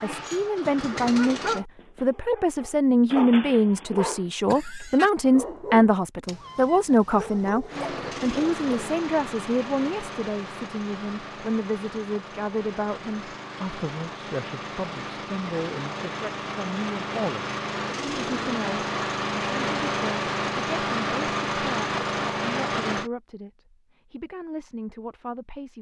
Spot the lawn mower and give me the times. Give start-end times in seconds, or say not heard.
0.0-1.6, 7.7-23.1.